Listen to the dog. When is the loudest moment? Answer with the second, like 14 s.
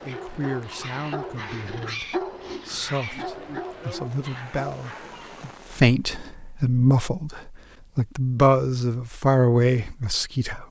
2 s.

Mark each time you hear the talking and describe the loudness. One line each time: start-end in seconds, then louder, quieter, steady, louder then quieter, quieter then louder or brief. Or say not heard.
0.1-10.6 louder.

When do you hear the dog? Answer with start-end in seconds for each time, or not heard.
0.0-5.5.